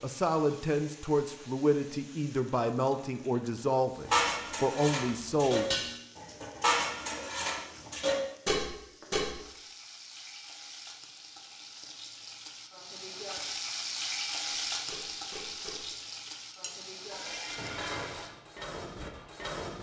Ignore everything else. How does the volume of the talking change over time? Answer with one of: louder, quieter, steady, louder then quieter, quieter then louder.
steady.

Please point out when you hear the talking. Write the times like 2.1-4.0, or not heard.
0.0-5.7.